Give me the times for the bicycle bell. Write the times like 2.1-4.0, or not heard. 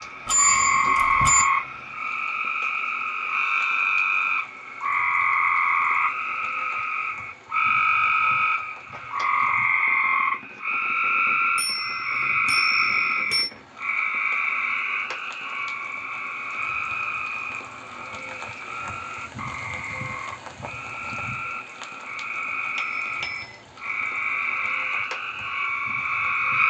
0.2-1.4, 11.6-13.5, 22.8-23.5.